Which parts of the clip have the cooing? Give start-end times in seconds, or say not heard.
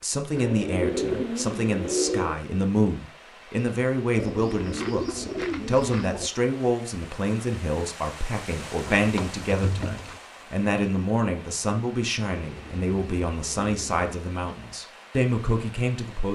0.3-2.4, 4.2-6.3, 8.7-10.2, 12.4-14.1.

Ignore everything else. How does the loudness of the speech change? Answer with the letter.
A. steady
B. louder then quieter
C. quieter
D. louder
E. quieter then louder
A.